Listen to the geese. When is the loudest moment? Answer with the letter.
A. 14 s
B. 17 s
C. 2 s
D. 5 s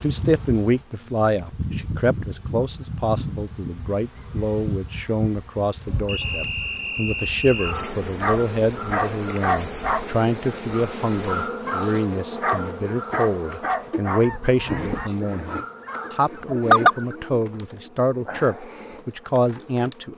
B.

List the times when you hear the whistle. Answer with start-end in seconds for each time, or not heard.
6.0-7.8.